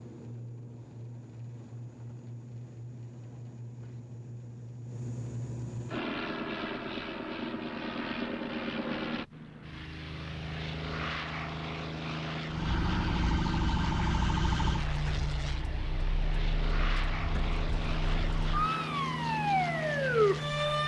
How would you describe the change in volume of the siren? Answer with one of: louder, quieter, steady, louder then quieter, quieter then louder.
quieter then louder.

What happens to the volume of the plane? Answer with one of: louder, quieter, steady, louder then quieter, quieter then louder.
louder.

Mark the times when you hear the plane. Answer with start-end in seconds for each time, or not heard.
0.0-20.8.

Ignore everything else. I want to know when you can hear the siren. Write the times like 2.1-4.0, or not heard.
12.4-20.8.